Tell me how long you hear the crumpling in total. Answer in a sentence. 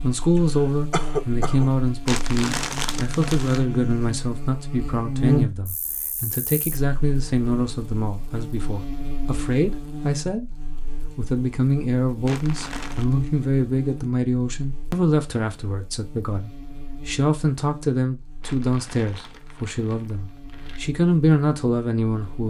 You can hear the crumpling for 5 seconds altogether.